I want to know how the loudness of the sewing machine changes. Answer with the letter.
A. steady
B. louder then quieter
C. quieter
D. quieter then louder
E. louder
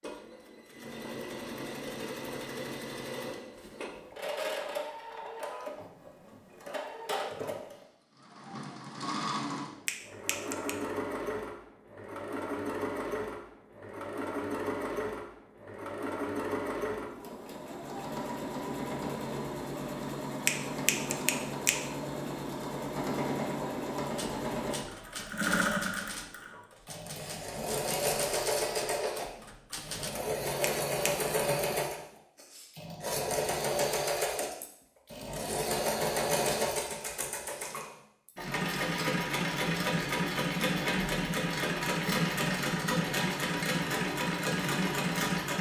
E.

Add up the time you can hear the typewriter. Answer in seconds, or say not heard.
6 s.